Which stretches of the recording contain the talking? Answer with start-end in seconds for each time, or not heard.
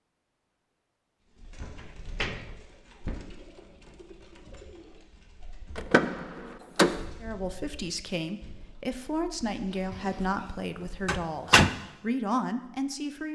7.2-13.3.